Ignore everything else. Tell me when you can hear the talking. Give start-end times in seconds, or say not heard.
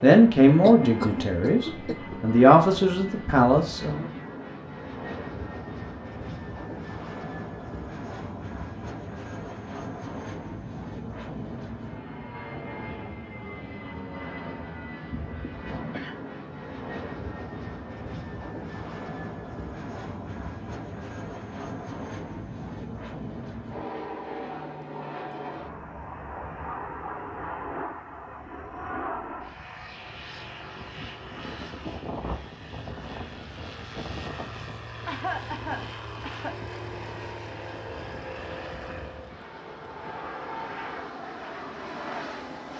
0.0-4.0.